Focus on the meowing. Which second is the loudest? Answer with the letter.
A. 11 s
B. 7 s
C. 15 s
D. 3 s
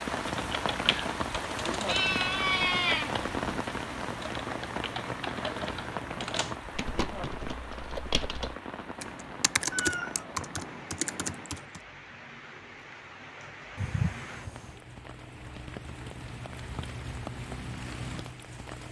D.